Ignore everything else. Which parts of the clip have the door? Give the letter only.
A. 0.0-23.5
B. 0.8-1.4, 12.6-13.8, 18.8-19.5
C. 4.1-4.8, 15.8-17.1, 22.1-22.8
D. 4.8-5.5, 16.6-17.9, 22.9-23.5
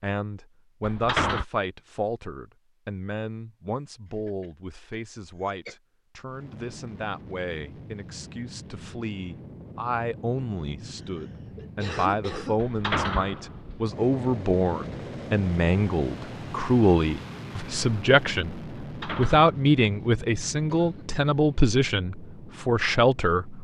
B.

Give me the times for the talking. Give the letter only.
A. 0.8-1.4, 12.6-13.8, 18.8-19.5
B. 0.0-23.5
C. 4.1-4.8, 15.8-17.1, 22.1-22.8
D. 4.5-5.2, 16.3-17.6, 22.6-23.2
B.